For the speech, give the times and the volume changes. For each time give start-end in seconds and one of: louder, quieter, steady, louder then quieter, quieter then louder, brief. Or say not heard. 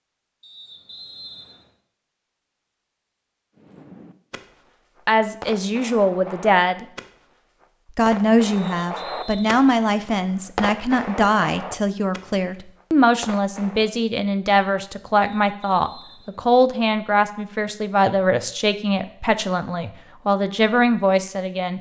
5.0-6.8 brief
8.0-21.7 steady.